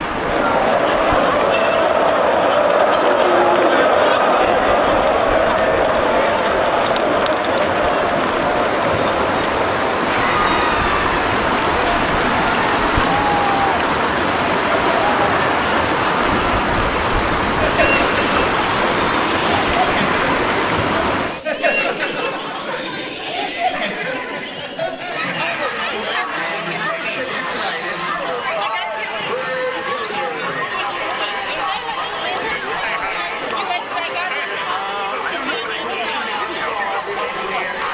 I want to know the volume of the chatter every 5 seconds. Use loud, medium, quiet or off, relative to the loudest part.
loud, loud, medium, medium, medium, medium, medium, medium.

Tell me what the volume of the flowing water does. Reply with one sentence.
The volume of the flowing water goes up.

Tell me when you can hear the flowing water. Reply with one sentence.
The flowing water can be heard from 0.0 to 21.4 s.